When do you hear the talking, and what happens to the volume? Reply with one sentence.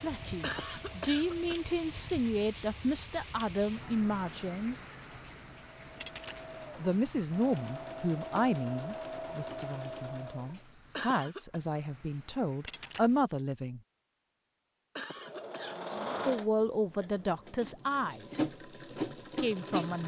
You can hear the talking from 0.0 to 4.8 s, at a steady volume; from 6.8 to 13.8 s, getting quieter then louder; briefly from 16.2 to 18.4 s; and briefly from 19.4 to 20.0 s.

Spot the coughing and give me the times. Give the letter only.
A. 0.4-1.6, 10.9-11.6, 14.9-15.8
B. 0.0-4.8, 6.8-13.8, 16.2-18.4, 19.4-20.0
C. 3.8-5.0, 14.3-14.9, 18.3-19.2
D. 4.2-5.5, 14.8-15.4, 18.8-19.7
A.